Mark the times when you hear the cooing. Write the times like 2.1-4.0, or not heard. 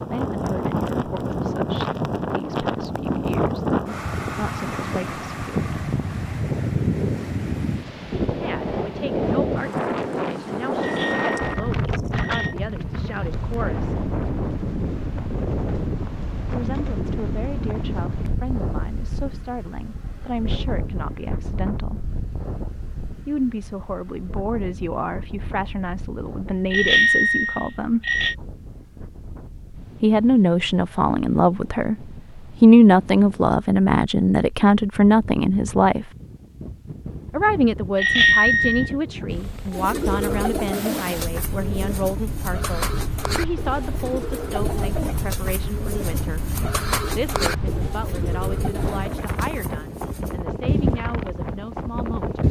39.7-50.4.